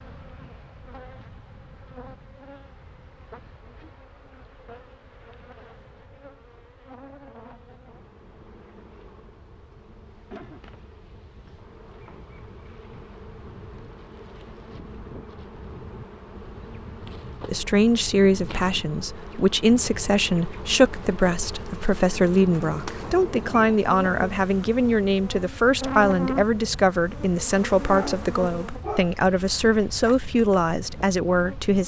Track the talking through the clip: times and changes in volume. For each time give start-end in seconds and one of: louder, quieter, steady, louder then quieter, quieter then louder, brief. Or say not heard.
17.4-31.8 steady.